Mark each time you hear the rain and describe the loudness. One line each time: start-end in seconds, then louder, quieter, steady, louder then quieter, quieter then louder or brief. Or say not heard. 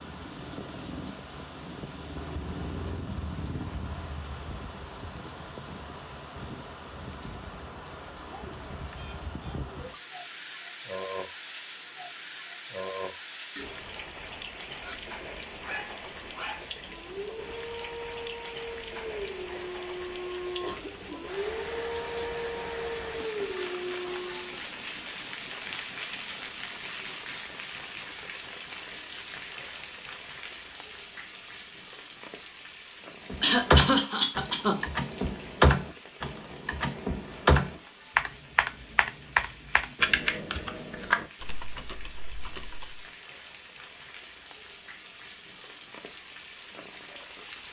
0.0-47.6 quieter.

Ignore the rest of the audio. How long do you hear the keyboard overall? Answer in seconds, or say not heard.
10 s.